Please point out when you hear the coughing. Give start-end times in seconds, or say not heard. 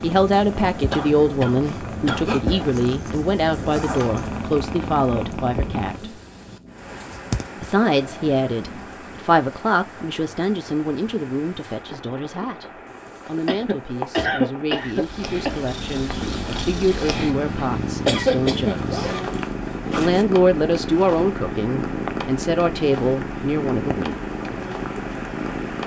0.9-2.5, 13.4-15.6, 18.1-18.8.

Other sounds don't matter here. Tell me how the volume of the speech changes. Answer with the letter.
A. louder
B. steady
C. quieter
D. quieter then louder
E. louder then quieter
D.